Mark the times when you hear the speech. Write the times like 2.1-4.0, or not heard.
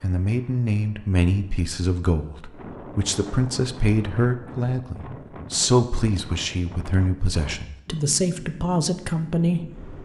0.0-9.9.